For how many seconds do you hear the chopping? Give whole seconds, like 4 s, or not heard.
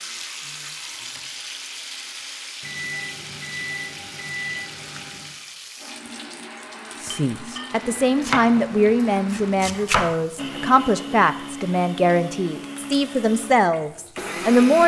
2 s.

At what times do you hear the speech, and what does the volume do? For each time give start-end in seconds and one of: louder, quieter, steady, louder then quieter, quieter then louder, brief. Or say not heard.
7.0-14.8 steady.